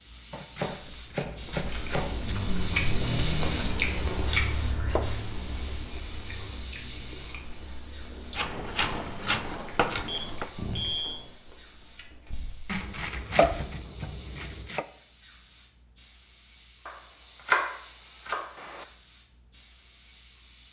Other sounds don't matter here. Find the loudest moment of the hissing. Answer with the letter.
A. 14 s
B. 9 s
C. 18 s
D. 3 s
D.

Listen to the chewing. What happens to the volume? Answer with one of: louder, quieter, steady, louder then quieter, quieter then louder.
quieter.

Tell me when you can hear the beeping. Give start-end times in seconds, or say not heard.
9.7-11.2.